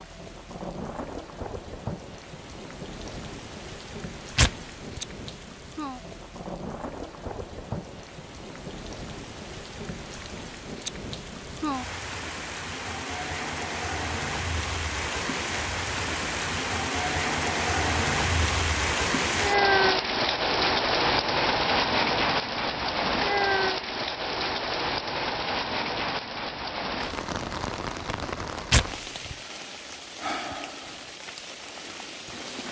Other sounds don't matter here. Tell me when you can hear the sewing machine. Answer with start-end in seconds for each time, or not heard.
not heard.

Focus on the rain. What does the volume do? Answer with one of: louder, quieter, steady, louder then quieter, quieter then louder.
louder then quieter.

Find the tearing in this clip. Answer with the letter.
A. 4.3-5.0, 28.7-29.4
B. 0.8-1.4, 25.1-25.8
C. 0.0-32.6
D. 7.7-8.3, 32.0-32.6
A.